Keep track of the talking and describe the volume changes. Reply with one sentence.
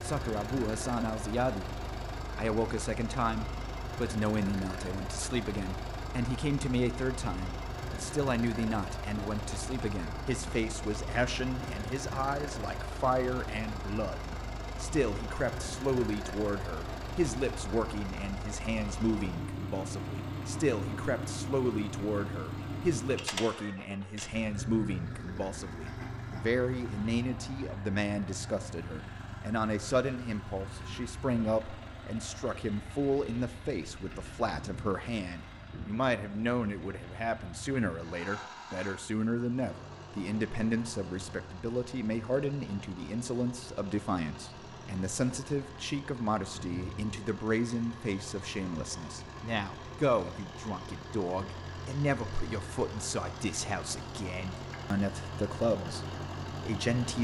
The volume of the talking stays about the same.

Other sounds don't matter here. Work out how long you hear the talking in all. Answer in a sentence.
The talking can be heard for 57 seconds in total.